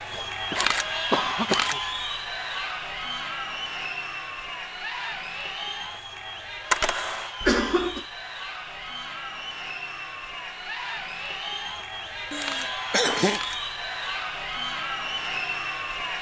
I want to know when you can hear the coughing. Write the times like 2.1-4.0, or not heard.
0.1-1.8, 7.4-8.1, 12.3-13.4.